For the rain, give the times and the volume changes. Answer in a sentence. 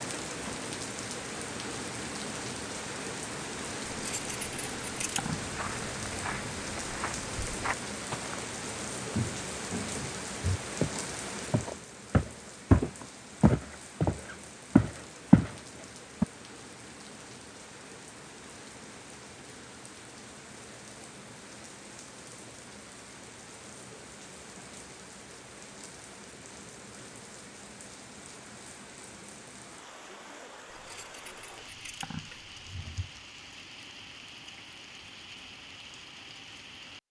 You can hear the rain from 0.0 to 37.0 s, getting quieter.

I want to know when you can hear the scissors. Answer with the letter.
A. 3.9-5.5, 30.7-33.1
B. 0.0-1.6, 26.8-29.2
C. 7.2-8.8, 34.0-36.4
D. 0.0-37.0
A.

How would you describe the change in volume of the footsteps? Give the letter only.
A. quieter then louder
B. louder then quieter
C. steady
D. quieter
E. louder
E.